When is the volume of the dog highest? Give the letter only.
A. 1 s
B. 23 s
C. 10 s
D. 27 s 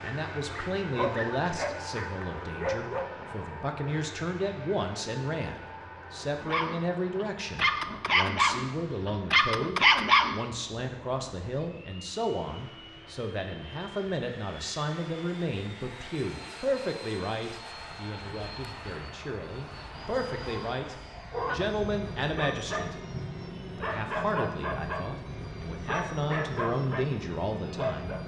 C.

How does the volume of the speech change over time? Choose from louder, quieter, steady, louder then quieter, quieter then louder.
steady.